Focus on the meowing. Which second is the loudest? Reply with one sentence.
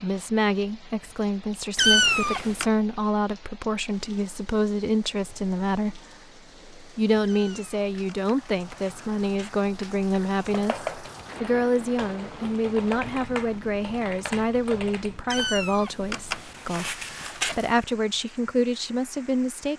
The volume of the meowing peaks at 2 seconds.